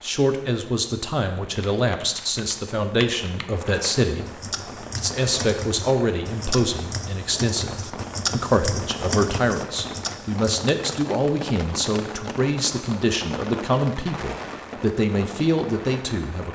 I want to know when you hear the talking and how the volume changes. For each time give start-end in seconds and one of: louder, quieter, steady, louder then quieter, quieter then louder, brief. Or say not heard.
0.0-16.5 steady.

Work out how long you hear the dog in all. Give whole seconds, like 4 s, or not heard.
not heard.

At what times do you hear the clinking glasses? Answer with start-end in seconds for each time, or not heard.
not heard.